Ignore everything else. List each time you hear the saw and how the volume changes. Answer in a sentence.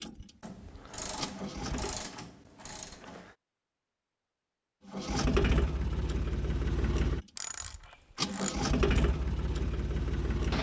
The saw can't be heard in this clip.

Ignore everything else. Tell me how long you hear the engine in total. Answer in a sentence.
The engine can be heard for 8 seconds in total.